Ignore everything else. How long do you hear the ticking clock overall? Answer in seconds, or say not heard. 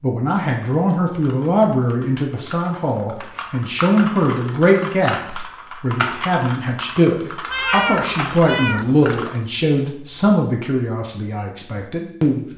not heard.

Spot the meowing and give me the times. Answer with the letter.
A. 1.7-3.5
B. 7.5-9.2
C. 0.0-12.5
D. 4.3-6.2
B.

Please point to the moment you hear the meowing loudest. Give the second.
8 s.